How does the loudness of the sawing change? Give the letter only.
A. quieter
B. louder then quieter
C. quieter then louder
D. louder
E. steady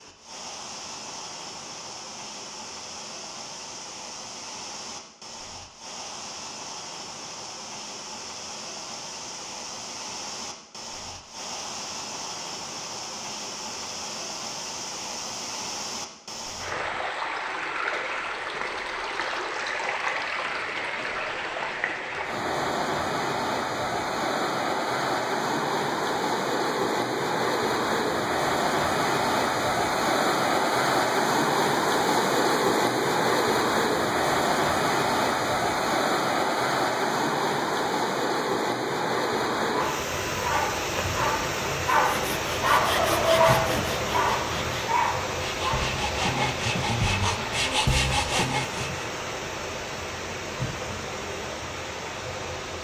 C.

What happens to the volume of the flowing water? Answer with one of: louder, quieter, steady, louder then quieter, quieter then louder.
louder then quieter.